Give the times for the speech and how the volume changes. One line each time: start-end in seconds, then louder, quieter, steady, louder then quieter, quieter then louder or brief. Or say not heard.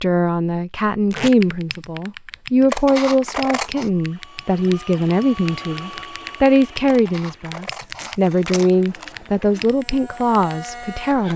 0.0-11.3 steady.